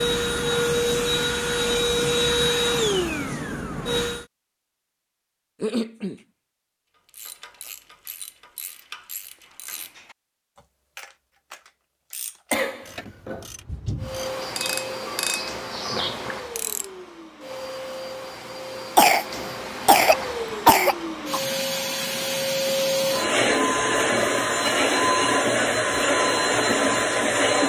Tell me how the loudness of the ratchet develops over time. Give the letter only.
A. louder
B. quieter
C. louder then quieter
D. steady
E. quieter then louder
A.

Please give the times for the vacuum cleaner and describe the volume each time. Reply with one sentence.
The vacuum cleaner can be heard from 0.0 to 4.2 s, getting quieter; and from 13.9 to 27.6 s, getting louder.